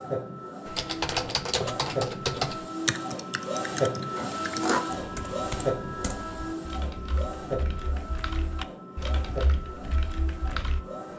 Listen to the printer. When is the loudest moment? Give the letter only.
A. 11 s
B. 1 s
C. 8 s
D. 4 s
D.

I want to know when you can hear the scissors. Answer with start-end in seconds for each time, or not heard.
4.2-4.8.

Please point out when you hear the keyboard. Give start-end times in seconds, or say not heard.
0.7-10.8.